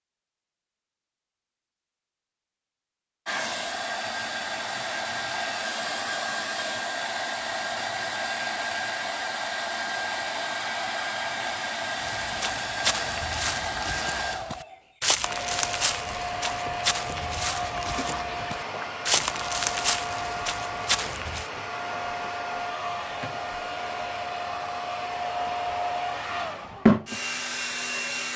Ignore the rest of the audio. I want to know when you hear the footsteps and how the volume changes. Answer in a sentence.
The footsteps can be heard from 11.9 to 21.4 s, at a steady volume.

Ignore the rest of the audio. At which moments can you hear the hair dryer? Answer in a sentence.
You can hear the hair dryer from 3.2 to 28.3 s.